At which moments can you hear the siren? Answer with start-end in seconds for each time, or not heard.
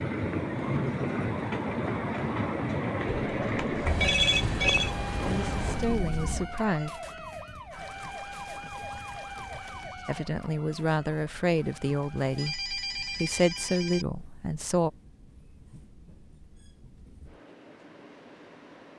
4.8-12.6.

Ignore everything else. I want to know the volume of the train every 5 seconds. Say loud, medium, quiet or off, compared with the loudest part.
loud, medium, quiet, quiet.